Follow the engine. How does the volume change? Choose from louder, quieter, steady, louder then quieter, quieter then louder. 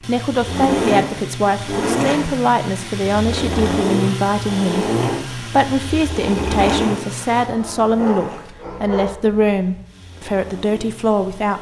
quieter.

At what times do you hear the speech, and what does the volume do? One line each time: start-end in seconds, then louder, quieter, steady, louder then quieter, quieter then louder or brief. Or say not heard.
0.1-11.5 steady.